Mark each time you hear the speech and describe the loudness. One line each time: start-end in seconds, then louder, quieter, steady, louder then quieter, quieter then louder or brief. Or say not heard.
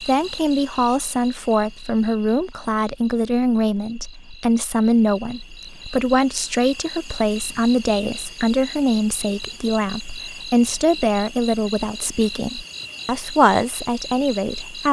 0.0-14.8 steady.